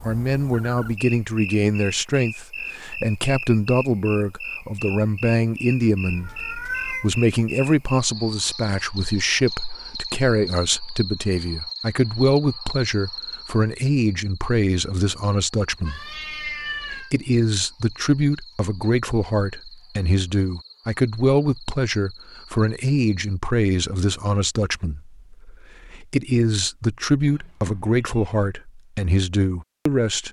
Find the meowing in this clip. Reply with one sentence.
You can hear the meowing from 6.0 to 7.1 s, from 15.8 to 17.1 s and from 27.2 to 28.4 s.